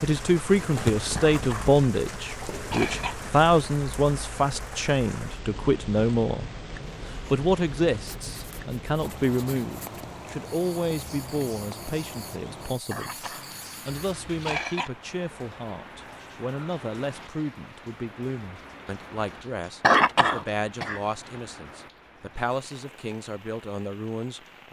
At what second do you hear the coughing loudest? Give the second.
20 s.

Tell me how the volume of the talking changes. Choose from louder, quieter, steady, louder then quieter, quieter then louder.
quieter.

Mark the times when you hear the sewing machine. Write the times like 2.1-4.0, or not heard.
not heard.